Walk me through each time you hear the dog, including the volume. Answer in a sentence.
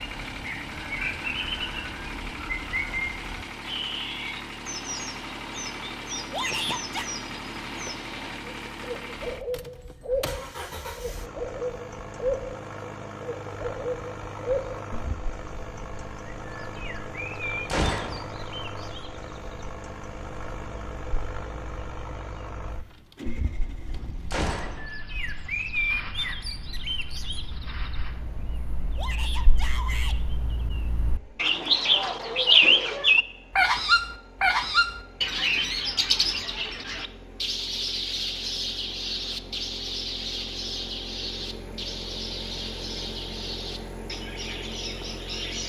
You can't hear the dog here.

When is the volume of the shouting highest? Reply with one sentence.
The loudest moment of the shouting is at 7 seconds.